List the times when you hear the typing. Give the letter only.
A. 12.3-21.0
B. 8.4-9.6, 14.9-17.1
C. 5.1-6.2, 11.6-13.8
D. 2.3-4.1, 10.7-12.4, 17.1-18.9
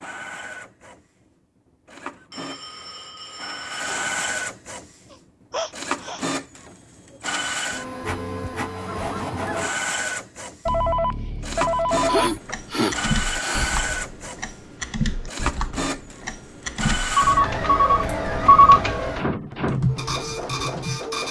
A.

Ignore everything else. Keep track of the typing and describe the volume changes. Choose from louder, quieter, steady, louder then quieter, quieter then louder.
steady.